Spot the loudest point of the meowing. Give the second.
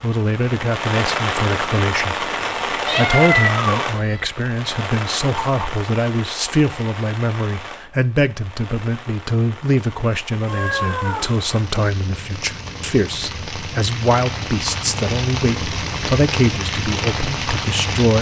3 s.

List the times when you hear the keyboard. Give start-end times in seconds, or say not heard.
not heard.